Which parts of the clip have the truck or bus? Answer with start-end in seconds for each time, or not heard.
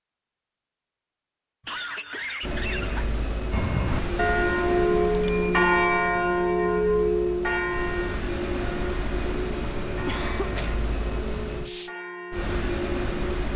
2.4-13.5.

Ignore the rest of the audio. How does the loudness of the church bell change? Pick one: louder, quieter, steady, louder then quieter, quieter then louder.
quieter.